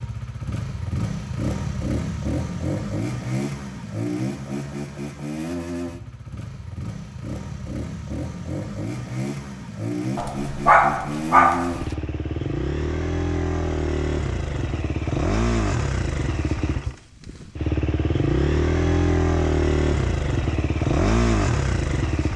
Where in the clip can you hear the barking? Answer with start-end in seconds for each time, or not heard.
10.2-11.9.